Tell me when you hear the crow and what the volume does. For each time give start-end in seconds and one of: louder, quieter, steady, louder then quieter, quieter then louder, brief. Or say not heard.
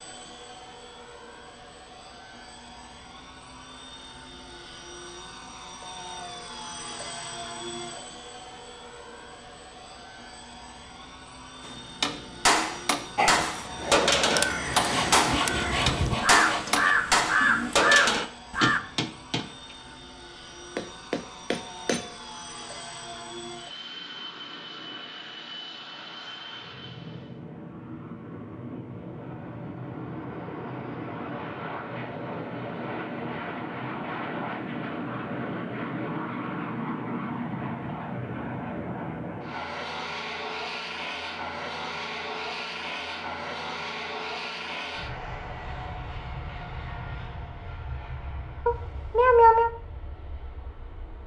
13.2-18.8 louder.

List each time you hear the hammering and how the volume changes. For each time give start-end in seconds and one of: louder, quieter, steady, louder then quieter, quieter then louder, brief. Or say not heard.
11.7-22.1 quieter.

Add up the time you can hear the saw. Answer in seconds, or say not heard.
2 s.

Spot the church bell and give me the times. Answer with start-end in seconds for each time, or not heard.
not heard.